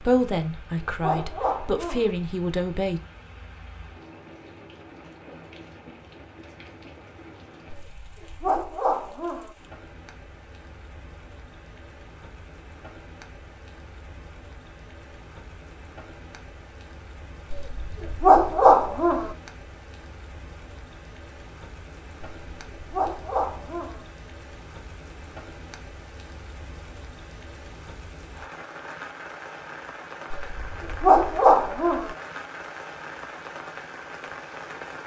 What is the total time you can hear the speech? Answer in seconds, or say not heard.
3 s.